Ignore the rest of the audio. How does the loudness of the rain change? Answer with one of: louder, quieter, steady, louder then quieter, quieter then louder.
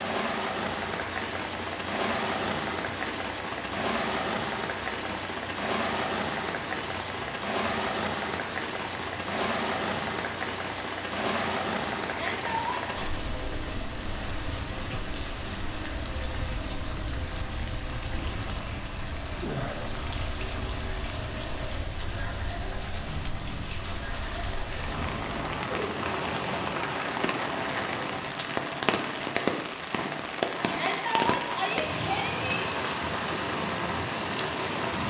quieter then louder.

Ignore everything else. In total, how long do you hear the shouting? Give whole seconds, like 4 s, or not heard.
3 s.